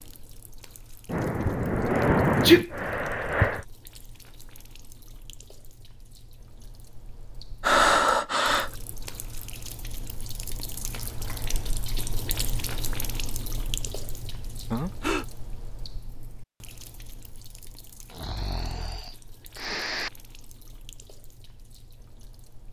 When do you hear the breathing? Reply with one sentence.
The breathing can be heard from 1.1 to 3.6 s, from 7.6 to 8.8 s, from 14.7 to 15.2 s and from 18.1 to 20.1 s.